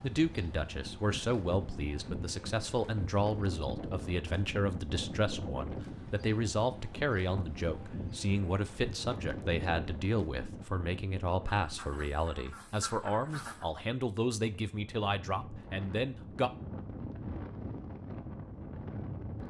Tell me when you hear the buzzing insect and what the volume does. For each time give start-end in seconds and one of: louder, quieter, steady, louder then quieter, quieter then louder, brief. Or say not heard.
not heard.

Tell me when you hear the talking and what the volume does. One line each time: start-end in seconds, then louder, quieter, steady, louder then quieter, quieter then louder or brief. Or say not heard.
0.0-16.5 steady.